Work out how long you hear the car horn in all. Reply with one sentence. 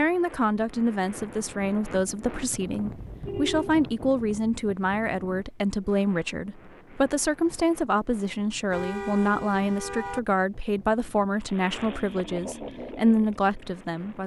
You can hear the car horn for 2 seconds altogether.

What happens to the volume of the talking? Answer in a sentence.
The loudness of the talking stays about the same.